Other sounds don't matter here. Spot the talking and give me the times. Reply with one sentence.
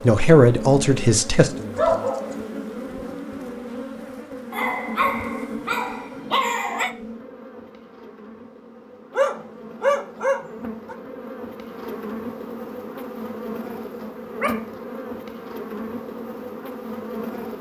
The talking can be heard from 0.0 to 2.1 s.